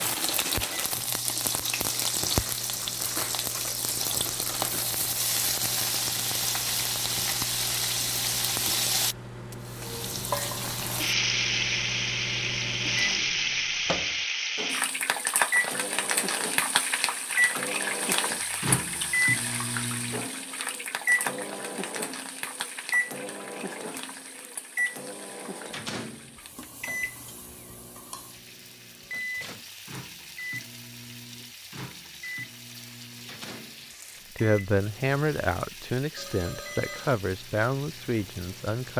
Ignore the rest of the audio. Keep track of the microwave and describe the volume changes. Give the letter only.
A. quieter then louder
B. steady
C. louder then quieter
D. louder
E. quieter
C.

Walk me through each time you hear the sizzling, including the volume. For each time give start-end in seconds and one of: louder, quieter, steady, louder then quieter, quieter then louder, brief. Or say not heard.
0.0-38.9 quieter.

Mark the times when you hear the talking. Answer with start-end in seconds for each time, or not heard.
34.4-38.9.